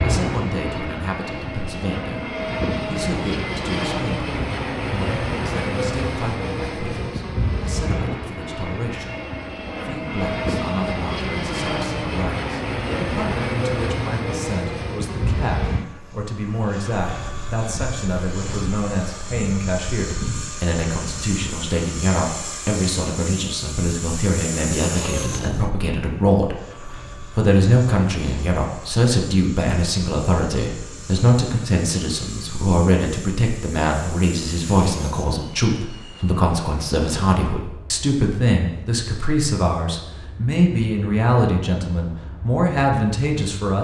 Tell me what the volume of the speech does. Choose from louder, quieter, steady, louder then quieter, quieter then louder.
louder.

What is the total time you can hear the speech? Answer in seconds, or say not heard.
43 s.